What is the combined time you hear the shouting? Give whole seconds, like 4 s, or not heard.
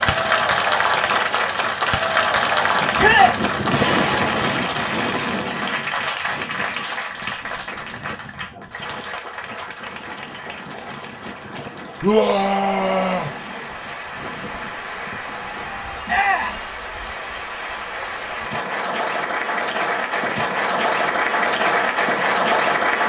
2 s.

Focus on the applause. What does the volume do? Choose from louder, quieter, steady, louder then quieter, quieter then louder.
quieter then louder.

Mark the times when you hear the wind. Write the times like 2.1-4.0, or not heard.
0.0-16.2.